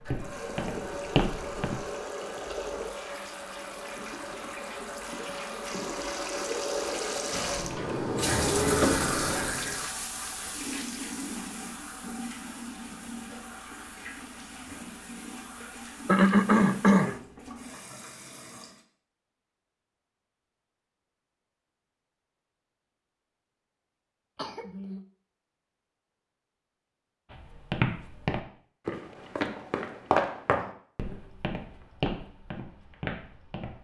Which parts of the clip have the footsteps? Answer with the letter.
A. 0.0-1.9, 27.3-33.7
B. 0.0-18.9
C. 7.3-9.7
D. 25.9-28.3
A.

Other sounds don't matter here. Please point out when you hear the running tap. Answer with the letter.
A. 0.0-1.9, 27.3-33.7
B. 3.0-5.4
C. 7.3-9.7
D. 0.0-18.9
D.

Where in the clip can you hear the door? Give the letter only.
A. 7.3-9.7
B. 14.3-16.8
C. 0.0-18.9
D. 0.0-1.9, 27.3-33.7
A.